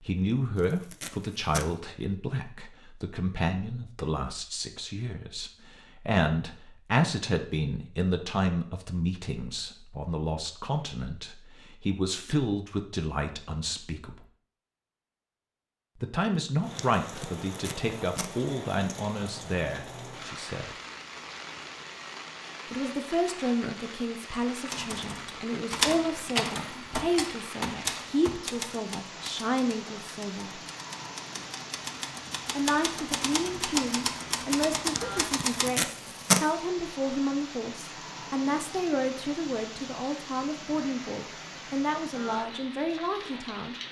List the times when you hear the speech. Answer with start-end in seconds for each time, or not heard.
0.0-14.2, 16.0-20.8, 22.7-30.6, 32.5-43.8.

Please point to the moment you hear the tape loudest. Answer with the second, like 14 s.
36 s.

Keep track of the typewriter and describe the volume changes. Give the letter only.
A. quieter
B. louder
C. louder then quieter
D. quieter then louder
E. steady
D.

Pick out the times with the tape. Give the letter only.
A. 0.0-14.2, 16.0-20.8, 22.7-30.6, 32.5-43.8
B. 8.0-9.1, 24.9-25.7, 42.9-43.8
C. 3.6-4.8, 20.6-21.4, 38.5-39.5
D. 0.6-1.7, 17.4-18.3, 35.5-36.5
D.